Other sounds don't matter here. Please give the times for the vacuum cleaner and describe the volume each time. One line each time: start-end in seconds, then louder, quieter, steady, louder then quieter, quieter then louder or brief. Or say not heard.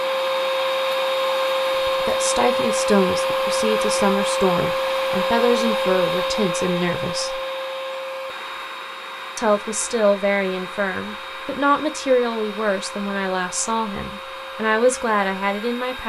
0.0-16.0 quieter.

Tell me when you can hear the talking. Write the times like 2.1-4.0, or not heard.
1.7-7.4, 9.3-16.0.